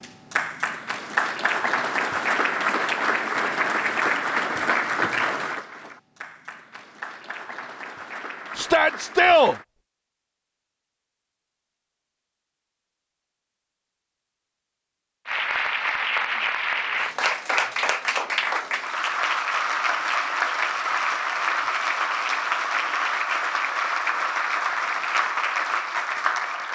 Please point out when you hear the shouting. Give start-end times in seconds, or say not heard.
8.6-9.6.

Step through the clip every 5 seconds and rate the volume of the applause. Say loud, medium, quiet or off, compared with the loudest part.
loud, medium, off, loud, loud, loud.